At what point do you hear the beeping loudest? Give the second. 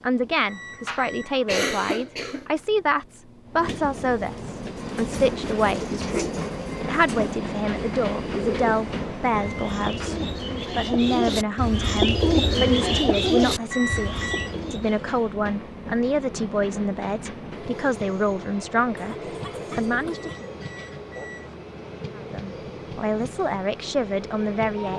14 s.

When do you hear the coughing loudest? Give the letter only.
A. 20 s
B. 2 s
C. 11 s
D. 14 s
B.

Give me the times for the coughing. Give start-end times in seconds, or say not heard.
0.8-2.5, 9.9-10.7, 18.9-20.4.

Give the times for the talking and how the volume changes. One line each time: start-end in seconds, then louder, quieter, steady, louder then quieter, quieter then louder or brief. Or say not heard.
0.0-19.1 steady
19.8-20.4 brief
22.1-24.9 brief.